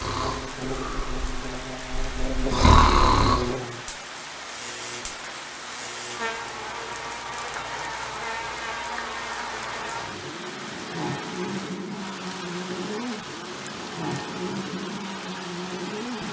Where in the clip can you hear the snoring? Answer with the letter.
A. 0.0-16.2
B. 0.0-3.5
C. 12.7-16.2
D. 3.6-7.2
B.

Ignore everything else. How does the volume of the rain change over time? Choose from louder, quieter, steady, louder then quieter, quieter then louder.
steady.